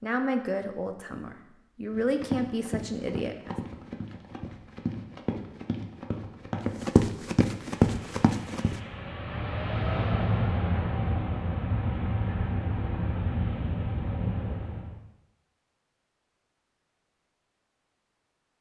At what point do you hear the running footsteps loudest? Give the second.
8 s.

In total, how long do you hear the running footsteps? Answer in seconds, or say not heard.
7 s.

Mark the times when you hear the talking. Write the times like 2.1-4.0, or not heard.
0.0-3.5.